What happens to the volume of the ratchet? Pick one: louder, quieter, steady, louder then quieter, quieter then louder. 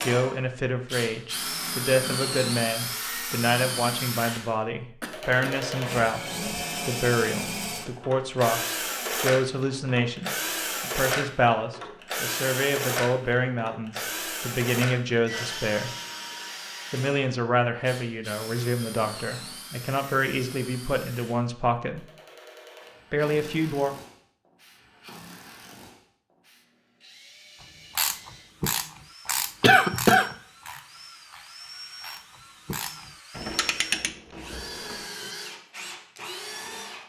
quieter then louder.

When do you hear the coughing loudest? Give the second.
30 s.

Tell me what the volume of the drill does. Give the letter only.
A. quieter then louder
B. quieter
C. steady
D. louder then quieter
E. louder
A.